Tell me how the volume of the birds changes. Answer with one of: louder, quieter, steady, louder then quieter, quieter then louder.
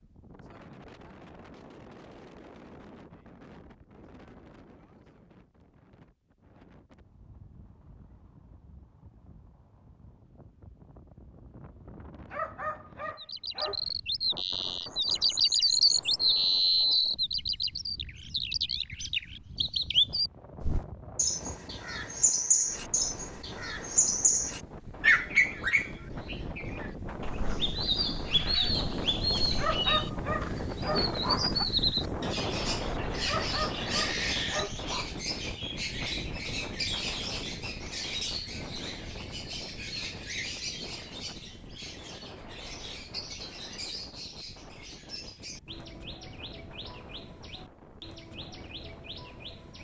quieter.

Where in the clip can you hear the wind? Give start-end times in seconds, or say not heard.
0.0-49.7.